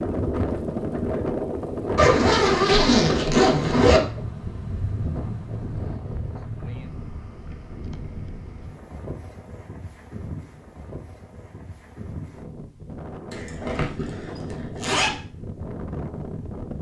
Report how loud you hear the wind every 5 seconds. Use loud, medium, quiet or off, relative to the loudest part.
loud, medium, medium, medium.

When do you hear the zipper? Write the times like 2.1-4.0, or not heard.
1.9-4.0, 13.3-15.2.